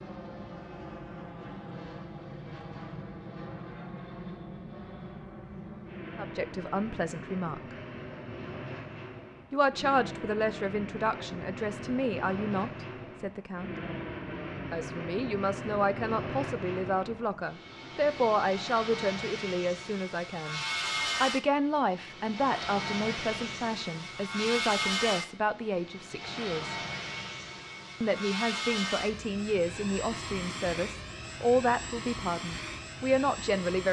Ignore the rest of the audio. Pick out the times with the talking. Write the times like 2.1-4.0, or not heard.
6.2-7.8, 9.5-13.7, 14.7-20.6, 21.2-26.8, 28.0-33.8.